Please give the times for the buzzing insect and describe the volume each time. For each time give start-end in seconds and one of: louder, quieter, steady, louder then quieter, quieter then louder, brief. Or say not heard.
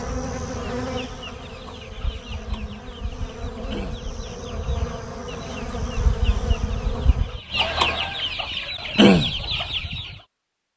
0.0-7.4 quieter then louder.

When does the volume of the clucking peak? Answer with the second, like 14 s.
9 s.